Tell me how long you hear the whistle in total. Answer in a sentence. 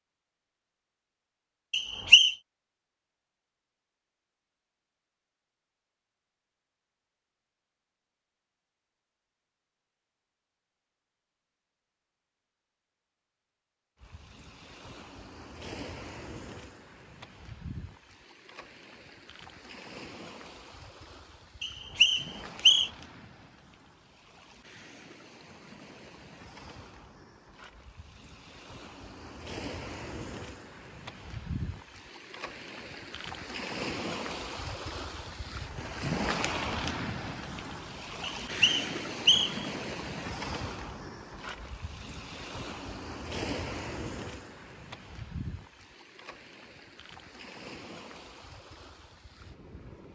The whistle can be heard for 3 seconds in total.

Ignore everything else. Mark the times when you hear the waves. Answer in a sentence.
You can hear the waves from 14.0 to 50.1 s.